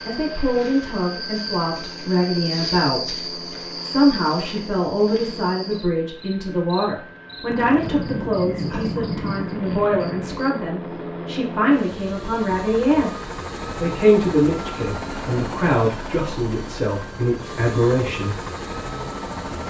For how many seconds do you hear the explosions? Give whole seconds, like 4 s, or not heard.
3 s.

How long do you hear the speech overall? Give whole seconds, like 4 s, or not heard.
18 s.